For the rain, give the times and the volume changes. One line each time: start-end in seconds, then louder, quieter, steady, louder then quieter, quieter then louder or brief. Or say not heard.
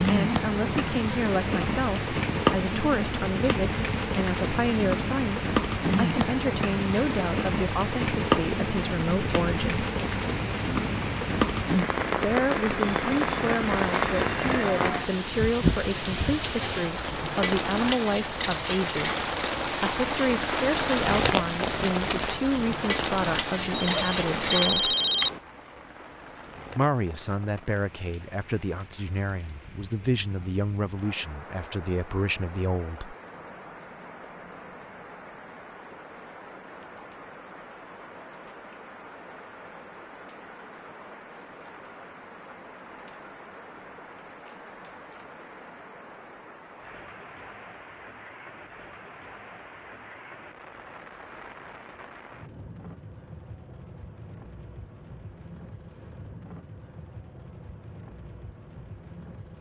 0.0-59.5 quieter.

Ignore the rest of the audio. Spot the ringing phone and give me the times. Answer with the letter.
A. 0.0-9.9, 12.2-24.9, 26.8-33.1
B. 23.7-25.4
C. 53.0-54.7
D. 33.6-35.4
B.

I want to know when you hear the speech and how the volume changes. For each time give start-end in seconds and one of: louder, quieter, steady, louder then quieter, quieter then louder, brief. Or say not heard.
0.0-9.9 steady
12.2-24.9 steady
26.8-33.1 steady.